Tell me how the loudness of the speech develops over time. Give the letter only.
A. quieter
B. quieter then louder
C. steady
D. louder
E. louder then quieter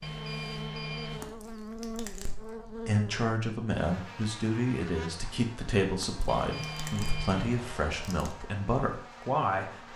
C.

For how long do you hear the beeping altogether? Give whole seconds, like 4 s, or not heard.
3 s.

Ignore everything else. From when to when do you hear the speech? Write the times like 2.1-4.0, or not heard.
2.9-9.9.